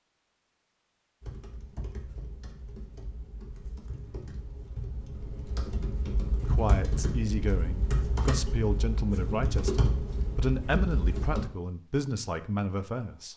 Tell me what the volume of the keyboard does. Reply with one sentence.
The volume of the keyboard goes up.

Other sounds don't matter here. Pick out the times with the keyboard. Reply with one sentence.
The keyboard can be heard from 1.2 to 11.4 s.